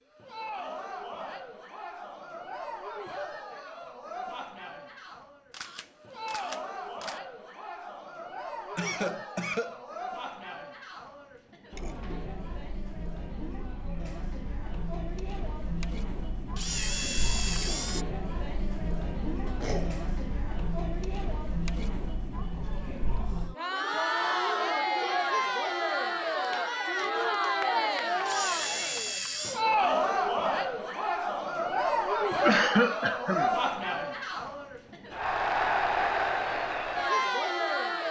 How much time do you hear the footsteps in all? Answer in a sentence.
The footsteps can't be heard in this clip.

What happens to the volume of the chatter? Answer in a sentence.
The loudness of the chatter goes up.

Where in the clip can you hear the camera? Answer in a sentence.
You can hear the camera from 5.5 to 7.2 s, from 16.6 to 18.1 s and from 28.2 to 29.6 s.